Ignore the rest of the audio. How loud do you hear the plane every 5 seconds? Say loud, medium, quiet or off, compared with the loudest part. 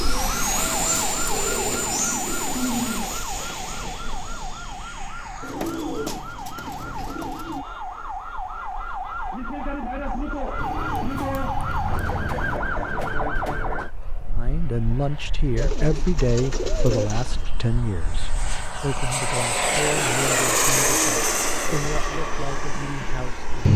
medium, quiet, quiet, medium, loud.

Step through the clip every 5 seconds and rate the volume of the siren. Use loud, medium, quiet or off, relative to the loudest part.
medium, medium, loud, off, off.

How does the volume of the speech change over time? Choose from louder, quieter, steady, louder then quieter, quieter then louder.
quieter.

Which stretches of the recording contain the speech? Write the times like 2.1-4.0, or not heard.
14.3-23.4.